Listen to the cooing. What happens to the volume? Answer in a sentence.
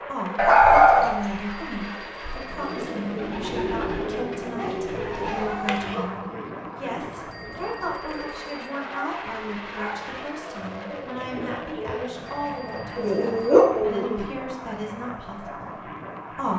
The volume of the cooing goes down, then up.